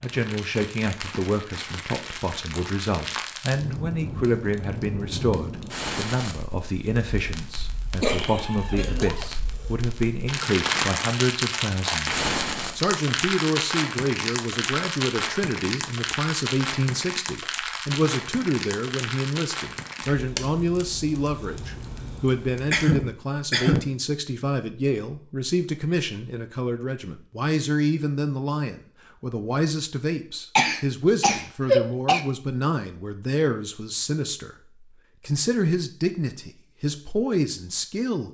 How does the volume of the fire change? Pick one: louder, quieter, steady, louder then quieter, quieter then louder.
louder then quieter.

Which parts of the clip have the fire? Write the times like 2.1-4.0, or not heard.
0.0-22.8.